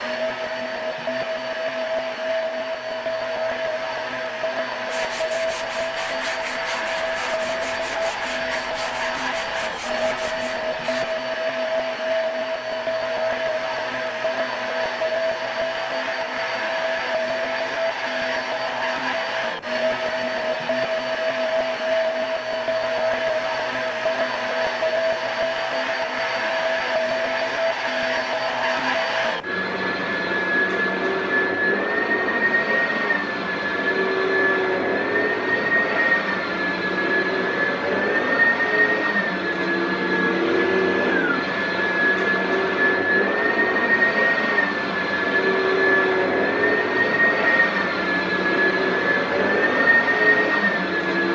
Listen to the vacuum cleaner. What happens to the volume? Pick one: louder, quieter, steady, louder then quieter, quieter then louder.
louder.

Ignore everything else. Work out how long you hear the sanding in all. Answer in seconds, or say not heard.
6 s.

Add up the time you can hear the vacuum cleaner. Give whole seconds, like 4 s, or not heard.
51 s.